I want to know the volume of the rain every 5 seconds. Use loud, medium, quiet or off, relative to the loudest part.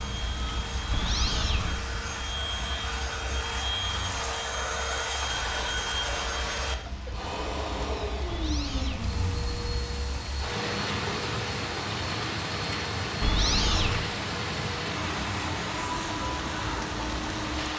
medium, medium, loud, loud.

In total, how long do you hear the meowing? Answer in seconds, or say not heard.
3 s.